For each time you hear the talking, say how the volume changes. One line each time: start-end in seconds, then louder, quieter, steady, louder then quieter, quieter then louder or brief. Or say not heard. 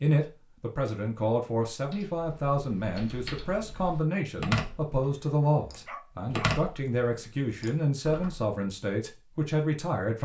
0.0-10.2 steady.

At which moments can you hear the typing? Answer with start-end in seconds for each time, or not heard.
1.9-8.4.